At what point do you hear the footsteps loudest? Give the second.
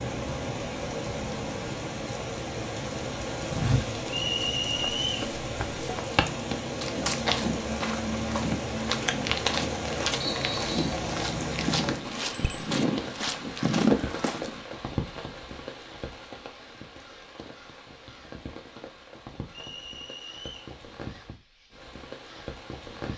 14 s.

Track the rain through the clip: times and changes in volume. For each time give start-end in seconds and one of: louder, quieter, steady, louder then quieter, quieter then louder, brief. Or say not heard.
0.0-23.1 quieter.